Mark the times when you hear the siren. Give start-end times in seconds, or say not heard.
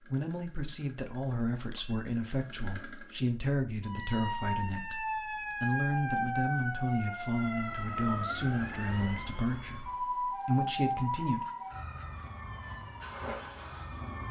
3.8-14.2.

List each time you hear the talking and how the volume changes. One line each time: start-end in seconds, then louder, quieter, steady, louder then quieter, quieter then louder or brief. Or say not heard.
0.1-11.4 steady.